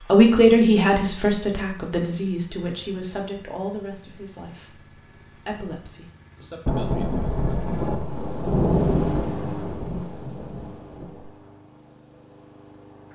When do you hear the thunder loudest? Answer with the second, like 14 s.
9 s.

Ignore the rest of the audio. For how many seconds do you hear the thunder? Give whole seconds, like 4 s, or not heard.
5 s.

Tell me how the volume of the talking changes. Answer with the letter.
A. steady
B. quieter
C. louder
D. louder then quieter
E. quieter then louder
B.